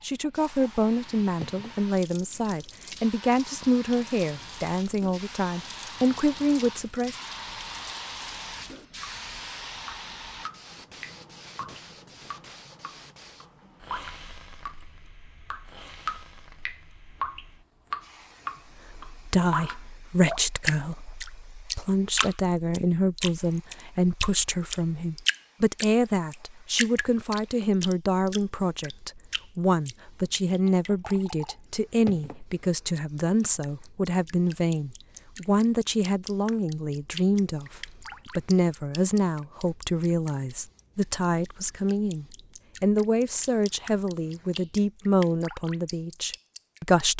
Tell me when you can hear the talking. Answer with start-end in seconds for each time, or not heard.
0.0-7.2, 18.9-47.1.